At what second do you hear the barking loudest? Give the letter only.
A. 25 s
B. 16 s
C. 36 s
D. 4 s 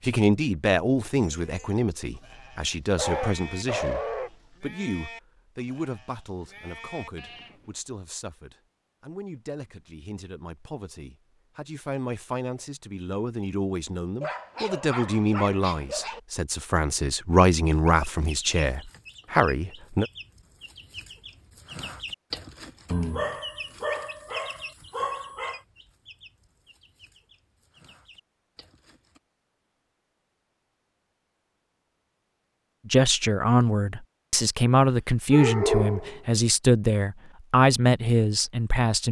C.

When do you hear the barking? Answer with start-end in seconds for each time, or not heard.
3.0-4.3, 14.2-16.2, 22.9-25.6, 35.3-36.2.